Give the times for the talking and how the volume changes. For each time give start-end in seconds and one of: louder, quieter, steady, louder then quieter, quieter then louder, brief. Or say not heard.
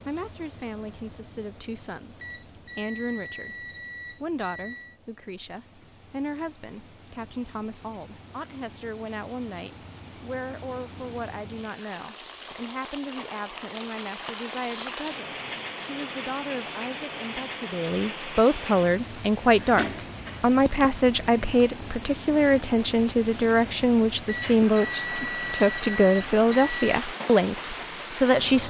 0.1-28.6 louder.